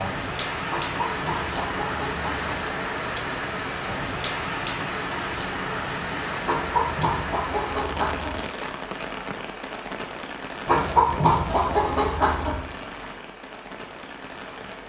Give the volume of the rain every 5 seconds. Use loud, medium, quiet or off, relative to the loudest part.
loud, loud, medium.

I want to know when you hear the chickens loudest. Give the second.
11 s.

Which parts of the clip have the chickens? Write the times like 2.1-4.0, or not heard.
0.7-2.5, 6.5-8.4, 10.7-12.6.